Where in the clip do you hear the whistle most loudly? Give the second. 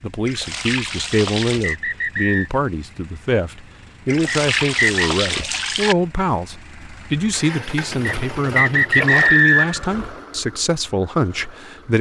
9 s.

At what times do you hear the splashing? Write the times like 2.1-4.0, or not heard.
0.2-1.8, 4.0-6.0, 8.9-9.5.